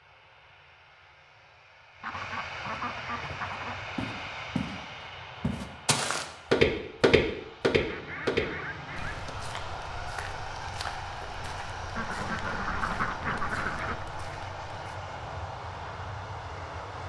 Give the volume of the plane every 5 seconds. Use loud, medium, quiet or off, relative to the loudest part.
loud, medium, loud, loud.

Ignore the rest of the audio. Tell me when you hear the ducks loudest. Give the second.
13 s.